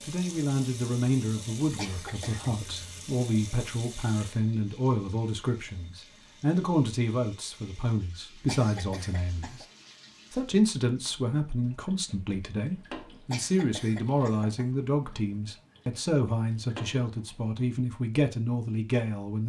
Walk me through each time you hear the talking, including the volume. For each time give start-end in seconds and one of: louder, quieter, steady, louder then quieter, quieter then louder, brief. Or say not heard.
0.0-9.7 steady
10.3-19.4 steady.